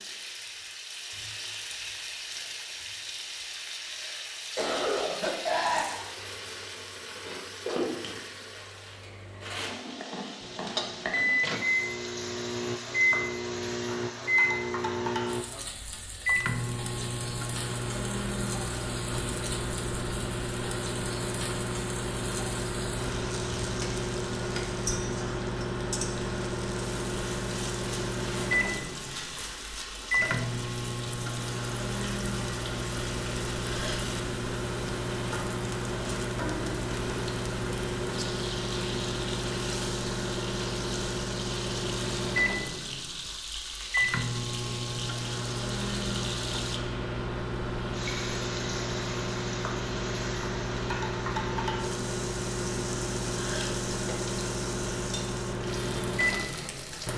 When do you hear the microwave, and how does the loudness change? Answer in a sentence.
You can hear the microwave from 10.4 to 57.1 s, at a steady volume.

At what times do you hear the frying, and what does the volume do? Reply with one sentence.
The frying can be heard from 0.0 to 57.1 s, at a steady volume.